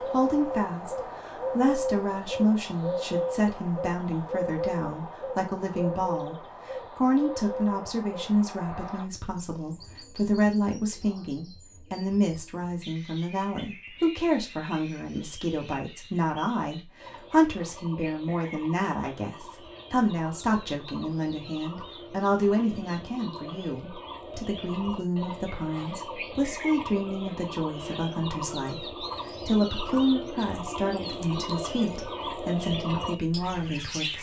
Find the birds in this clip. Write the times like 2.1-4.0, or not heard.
0.0-34.1.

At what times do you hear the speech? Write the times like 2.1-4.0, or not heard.
0.0-34.1.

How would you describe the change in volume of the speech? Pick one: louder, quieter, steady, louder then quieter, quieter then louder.
steady.